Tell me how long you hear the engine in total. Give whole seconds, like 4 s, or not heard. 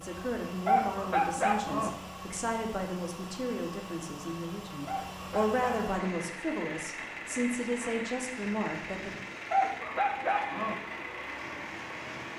12 s.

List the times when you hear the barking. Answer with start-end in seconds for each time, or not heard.
0.7-1.9, 4.8-6.0, 9.5-10.8.